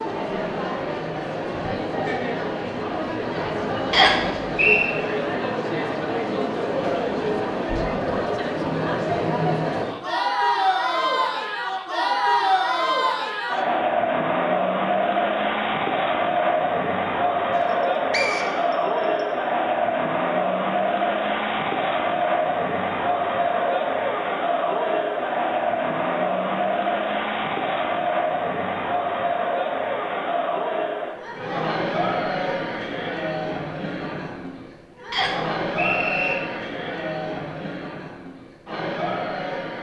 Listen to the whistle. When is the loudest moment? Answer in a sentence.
The volume of the whistle peaks at 4 seconds.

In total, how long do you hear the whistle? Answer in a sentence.
You can hear the whistle for 4 seconds altogether.